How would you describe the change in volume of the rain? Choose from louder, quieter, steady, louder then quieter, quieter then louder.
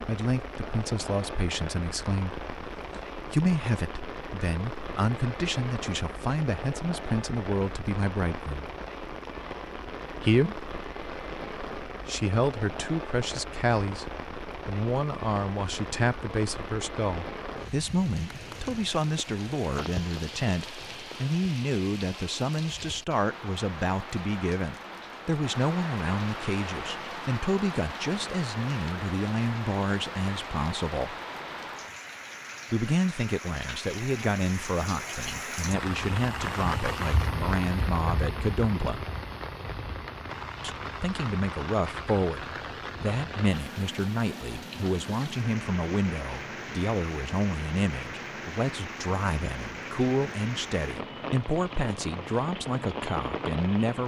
steady.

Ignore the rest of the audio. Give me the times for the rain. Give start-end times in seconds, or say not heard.
0.0-54.0.